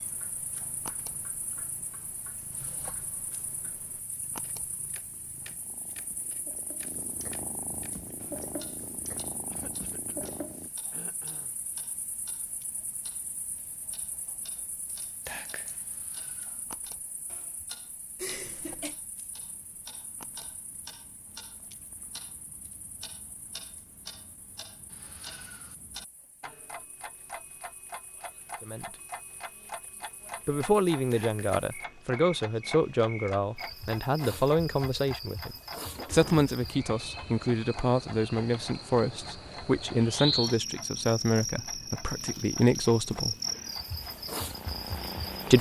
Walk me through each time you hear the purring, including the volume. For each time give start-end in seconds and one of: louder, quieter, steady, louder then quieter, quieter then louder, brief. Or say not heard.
0.0-10.7 louder
43.1-45.5 brief.